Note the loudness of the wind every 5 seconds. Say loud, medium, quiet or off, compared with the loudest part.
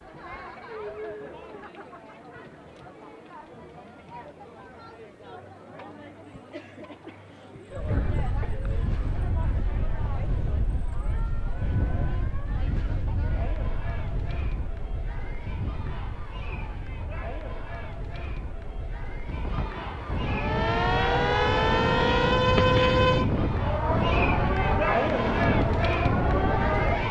off, medium, medium, quiet, loud, loud.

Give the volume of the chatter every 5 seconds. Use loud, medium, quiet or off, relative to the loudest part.
quiet, quiet, quiet, quiet, loud, loud.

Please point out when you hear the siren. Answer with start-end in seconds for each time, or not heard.
20.2-27.0.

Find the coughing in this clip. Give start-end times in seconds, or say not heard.
7.0-8.6.